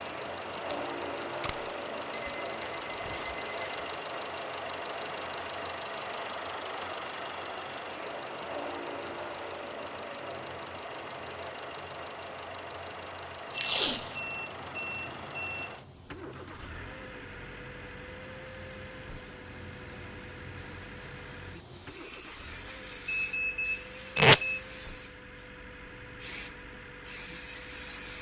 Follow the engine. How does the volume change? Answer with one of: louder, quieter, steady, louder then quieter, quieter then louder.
quieter.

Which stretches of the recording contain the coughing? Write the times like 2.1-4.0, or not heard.
not heard.